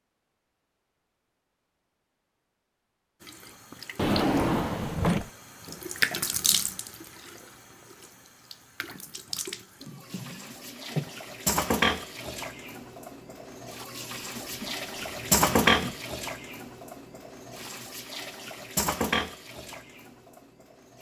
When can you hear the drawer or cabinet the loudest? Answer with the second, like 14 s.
4 s.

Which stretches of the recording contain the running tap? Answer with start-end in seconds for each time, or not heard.
3.2-4.6, 5.6-20.9.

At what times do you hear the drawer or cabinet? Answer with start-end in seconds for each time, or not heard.
4.0-5.3, 9.8-11.1, 14.2-16.0.